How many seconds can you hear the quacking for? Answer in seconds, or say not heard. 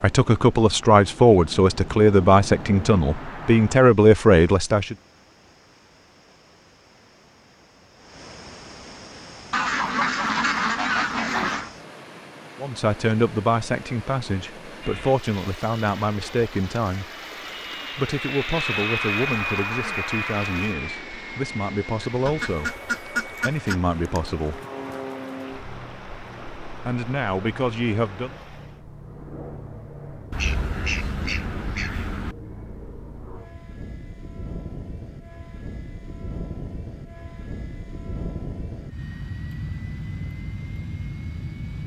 6 s.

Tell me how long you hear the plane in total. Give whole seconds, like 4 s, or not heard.
31 s.